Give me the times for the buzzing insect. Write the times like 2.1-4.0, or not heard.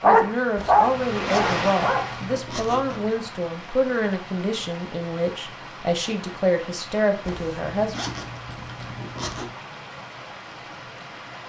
not heard.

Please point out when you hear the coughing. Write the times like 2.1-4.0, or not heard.
not heard.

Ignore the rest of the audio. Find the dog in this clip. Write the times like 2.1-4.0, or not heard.
0.0-2.1.